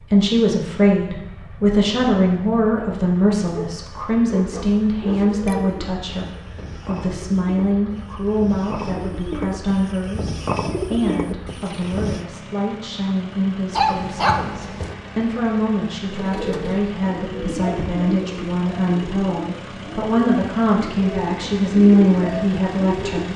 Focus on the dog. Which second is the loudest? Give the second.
14 s.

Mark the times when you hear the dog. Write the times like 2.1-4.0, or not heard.
3.6-5.7, 13.7-14.9.